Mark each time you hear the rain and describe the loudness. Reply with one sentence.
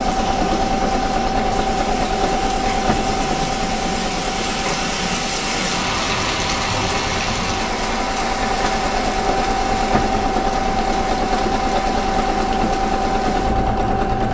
The rain can be heard from 0.0 to 14.2 s, getting louder then quieter.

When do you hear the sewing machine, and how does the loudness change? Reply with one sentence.
You can hear the sewing machine from 0.0 to 14.2 s, getting quieter then louder.